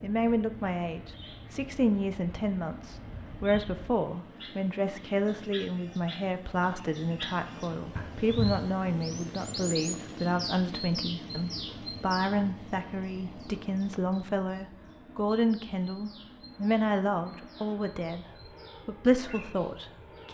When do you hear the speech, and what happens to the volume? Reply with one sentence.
You can hear the speech from 0.0 to 20.2 s, at a steady volume.